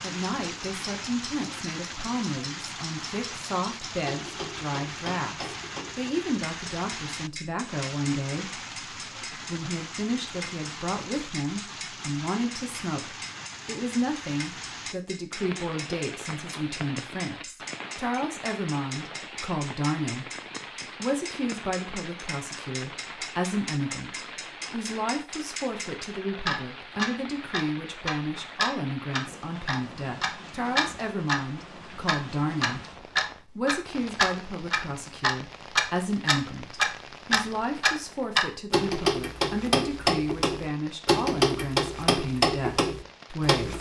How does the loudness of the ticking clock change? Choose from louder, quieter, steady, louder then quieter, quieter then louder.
louder.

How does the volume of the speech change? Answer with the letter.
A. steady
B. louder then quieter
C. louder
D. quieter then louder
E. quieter
A.